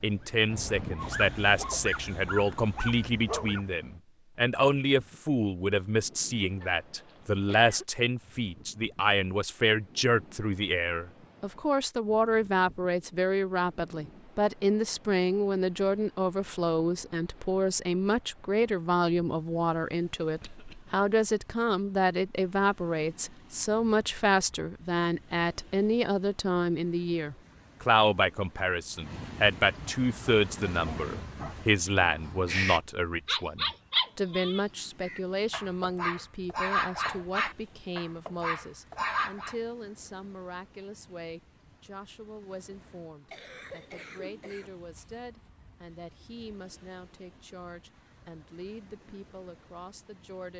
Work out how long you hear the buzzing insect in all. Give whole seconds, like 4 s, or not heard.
not heard.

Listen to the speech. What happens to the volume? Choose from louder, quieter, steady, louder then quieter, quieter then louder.
quieter.